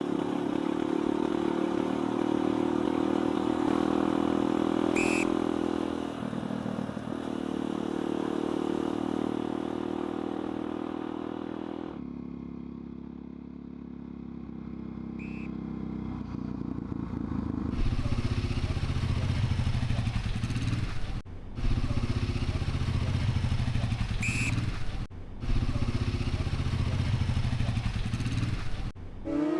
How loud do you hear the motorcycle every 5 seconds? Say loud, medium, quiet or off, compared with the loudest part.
loud, loud, medium, medium, medium, medium.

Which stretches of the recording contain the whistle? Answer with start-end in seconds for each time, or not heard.
4.9-5.3, 15.2-15.6, 24.2-24.6.